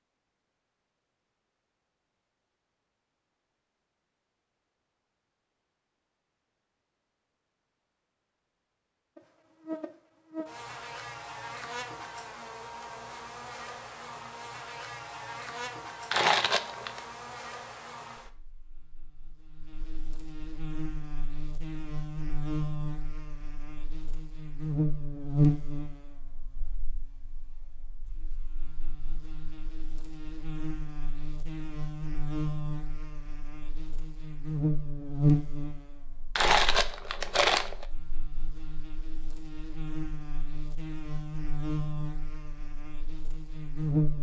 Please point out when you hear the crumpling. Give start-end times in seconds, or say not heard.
16.1-17.0, 36.4-37.9.